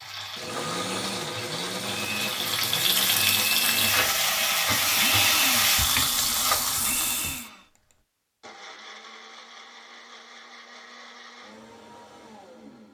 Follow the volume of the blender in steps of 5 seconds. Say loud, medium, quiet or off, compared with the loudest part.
loud, loud, quiet.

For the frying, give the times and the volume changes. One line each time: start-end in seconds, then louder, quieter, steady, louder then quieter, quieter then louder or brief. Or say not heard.
0.0-7.5 louder.